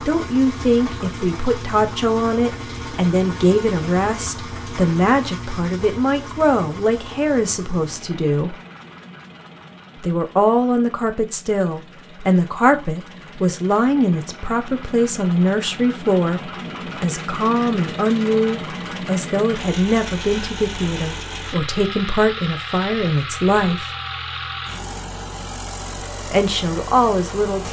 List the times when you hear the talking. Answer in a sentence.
You can hear the talking from 0.0 to 8.6 s, from 10.0 to 23.9 s and from 26.3 to 27.6 s.